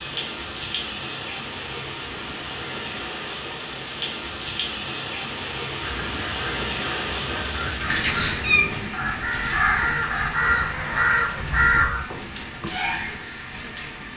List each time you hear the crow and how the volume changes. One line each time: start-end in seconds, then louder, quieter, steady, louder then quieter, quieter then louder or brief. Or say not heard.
5.8-12.8 louder.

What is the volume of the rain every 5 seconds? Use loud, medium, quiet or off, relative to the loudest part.
loud, loud, medium.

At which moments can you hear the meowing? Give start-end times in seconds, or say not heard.
8.0-8.7.